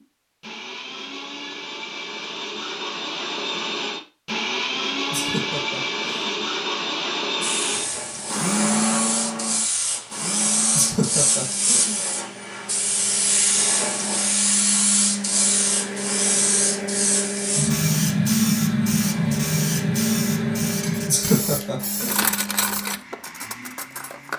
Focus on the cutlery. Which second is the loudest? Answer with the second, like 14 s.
22 s.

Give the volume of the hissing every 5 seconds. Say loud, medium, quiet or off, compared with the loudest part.
off, medium, loud, loud, loud.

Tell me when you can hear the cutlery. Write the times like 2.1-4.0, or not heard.
20.8-24.3.